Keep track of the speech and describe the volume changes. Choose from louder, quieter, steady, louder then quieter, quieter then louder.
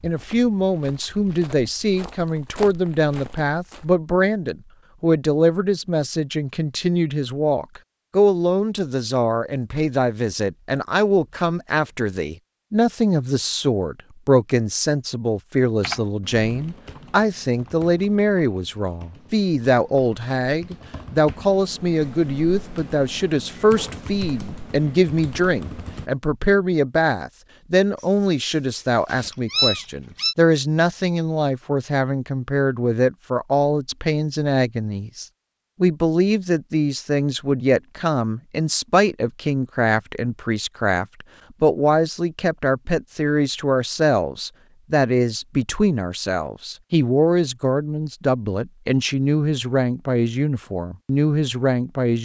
steady.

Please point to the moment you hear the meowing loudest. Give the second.
30 s.